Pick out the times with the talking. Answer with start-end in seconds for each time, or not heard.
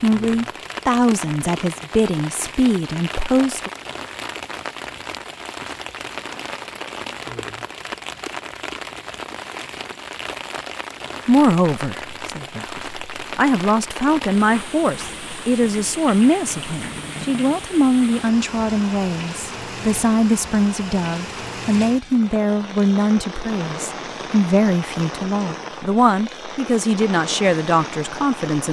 0.0-3.7, 11.2-28.6.